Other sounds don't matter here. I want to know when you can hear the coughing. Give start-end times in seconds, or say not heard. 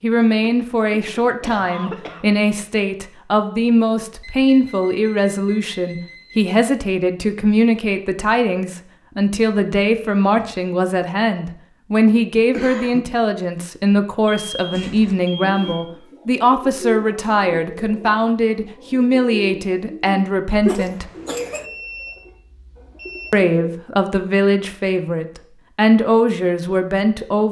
0.4-2.2, 12.5-13.1, 20.6-21.6.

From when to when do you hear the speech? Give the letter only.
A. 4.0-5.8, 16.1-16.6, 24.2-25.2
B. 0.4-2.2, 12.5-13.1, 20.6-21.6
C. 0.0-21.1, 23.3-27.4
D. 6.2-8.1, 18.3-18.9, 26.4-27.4
C.